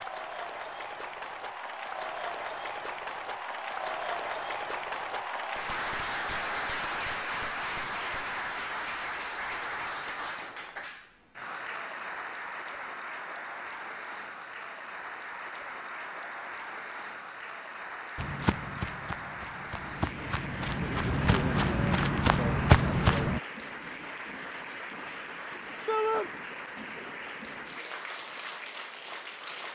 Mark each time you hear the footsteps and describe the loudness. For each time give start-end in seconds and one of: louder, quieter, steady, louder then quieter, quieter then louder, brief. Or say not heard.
18.1-23.4 louder.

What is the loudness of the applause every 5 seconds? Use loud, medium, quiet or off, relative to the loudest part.
loud, loud, medium, medium, medium, medium.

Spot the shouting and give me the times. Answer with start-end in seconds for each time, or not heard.
25.9-26.3.